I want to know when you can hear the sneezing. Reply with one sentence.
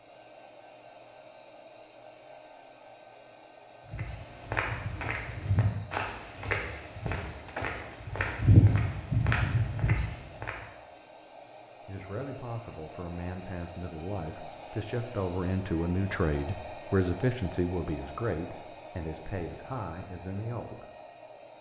The sneezing can't be heard in this clip.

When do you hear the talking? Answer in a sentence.
The talking can be heard from 11.8 to 20.9 s.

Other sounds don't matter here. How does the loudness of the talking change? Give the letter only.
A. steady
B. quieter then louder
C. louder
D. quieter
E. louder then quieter
E.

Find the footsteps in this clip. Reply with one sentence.
The footsteps can be heard from 3.9 to 10.6 s.